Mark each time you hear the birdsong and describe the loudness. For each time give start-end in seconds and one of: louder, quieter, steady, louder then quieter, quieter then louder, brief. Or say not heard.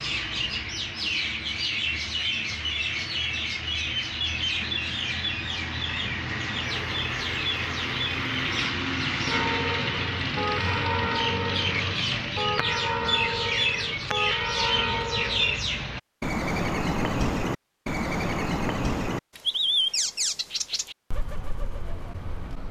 0.0-22.6 steady.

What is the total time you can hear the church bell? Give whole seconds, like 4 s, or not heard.
6 s.